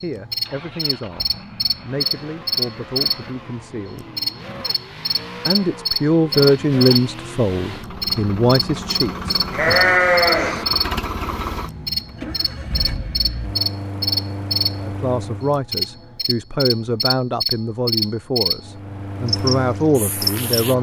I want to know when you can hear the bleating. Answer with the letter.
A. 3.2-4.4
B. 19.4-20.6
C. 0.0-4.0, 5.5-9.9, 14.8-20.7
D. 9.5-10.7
D.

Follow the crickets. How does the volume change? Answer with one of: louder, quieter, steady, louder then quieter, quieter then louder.
steady.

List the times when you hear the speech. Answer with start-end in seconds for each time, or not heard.
0.0-4.0, 5.5-9.9, 14.8-20.7.